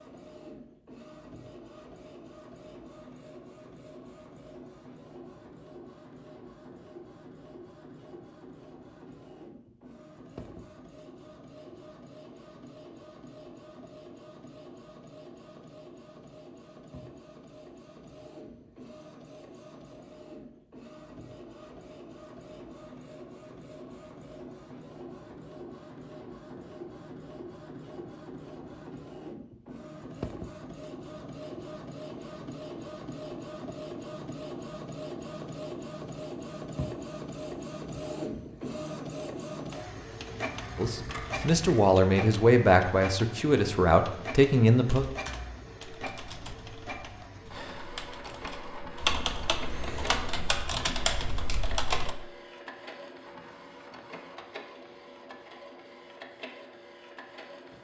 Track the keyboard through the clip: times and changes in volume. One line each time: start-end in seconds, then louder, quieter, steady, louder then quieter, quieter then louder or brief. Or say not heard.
44.7-52.1 louder.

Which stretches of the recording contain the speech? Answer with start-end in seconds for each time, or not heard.
40.8-45.0.